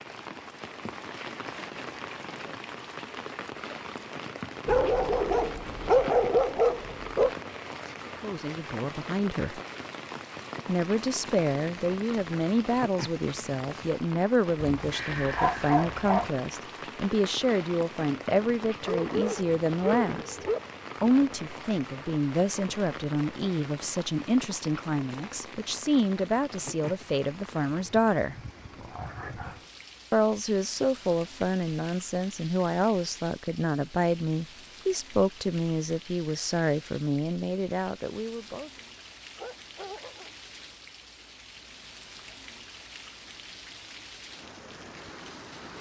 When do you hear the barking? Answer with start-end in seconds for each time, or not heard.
4.7-7.3, 14.6-16.3, 18.8-20.6, 28.7-29.6, 39.0-40.3.